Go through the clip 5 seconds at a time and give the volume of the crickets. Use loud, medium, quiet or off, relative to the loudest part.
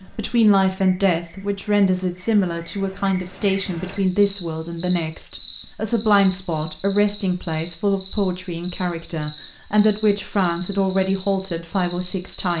medium, loud, loud.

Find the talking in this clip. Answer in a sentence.
You can hear the talking from 0.1 to 12.5 s.